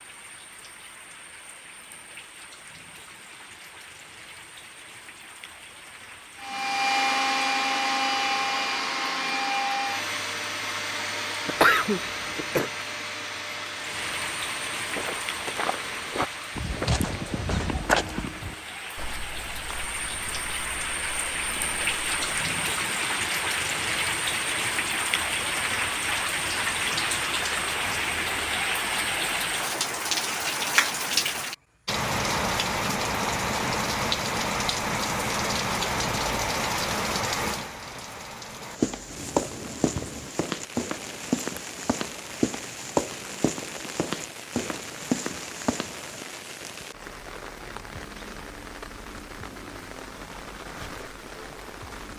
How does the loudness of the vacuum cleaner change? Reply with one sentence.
The volume of the vacuum cleaner goes down.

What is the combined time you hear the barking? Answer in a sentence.
The barking can't be heard in this clip.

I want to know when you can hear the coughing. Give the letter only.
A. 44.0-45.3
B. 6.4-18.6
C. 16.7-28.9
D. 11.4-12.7
D.